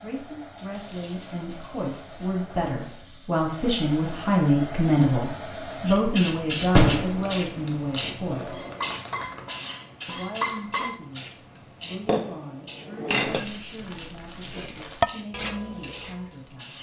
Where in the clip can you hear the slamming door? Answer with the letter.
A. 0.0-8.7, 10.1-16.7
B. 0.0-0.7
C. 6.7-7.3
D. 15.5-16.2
C.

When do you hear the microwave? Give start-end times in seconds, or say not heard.
not heard.